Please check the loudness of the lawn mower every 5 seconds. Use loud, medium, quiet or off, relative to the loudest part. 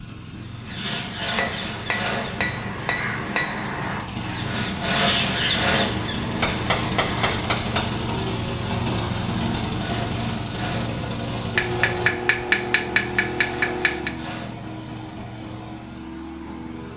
medium, loud, loud, medium.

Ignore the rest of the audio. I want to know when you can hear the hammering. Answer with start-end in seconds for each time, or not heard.
1.4-3.6, 6.4-8.1, 11.6-14.1.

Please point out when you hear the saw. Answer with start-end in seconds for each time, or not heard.
0.8-2.4, 4.5-6.0, 9.7-10.9, 13.3-14.6.